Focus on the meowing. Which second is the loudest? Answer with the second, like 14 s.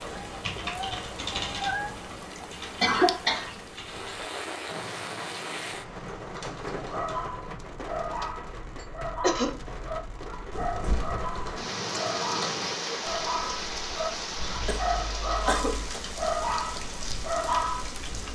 2 s.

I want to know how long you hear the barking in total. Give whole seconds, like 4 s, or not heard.
11 s.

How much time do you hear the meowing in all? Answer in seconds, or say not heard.
3 s.